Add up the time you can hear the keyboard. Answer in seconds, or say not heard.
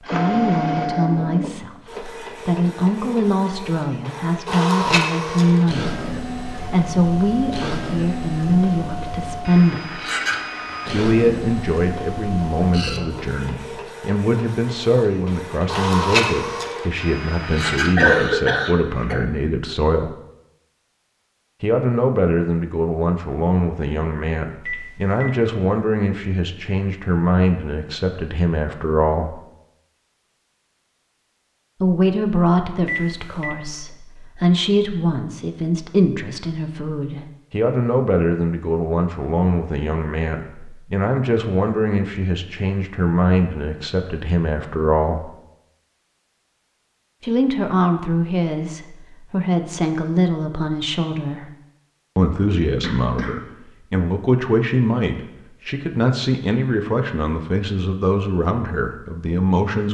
not heard.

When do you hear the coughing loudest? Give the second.
18 s.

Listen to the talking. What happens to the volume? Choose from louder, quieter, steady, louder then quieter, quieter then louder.
steady.